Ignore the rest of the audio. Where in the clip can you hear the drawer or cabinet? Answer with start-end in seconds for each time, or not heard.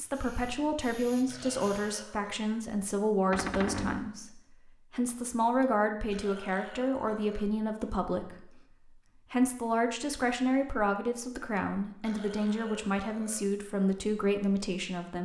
3.3-4.0.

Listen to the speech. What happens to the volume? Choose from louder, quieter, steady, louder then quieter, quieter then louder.
steady.